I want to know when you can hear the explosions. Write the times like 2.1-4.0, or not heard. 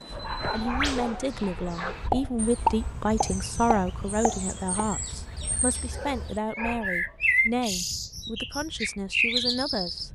2.1-4.8.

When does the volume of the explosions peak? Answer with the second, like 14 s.
3 s.